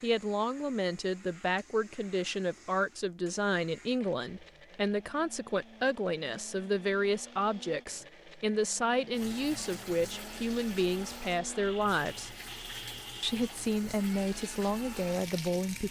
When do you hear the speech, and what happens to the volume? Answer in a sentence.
The speech can be heard from 0.0 to 12.3 s, at a steady volume; and briefly from 13.2 to 15.8 s.